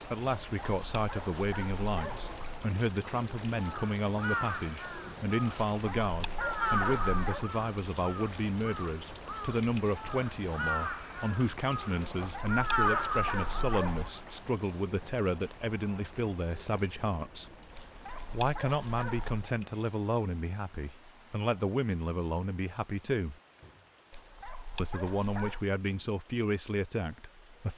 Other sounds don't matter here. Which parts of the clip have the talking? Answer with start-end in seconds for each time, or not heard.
0.1-17.6, 18.3-23.4, 24.8-27.7.